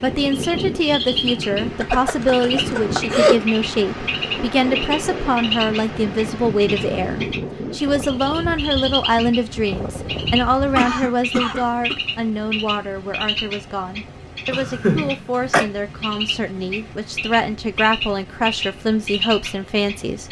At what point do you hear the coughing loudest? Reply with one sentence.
The loudest moment of the coughing is at 3 seconds.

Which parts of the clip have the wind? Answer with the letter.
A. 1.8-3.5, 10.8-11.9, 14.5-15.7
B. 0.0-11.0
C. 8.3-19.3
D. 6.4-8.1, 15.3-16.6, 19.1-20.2
B.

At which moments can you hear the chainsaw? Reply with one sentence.
The chainsaw can't be heard in this clip.